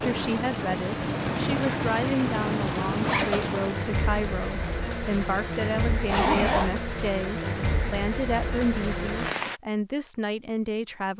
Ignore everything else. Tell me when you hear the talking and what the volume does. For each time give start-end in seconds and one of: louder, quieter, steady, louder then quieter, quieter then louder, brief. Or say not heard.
0.0-11.1 steady.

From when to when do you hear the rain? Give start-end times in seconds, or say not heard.
0.0-9.6.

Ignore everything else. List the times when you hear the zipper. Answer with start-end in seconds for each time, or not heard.
3.0-3.6, 6.0-6.7.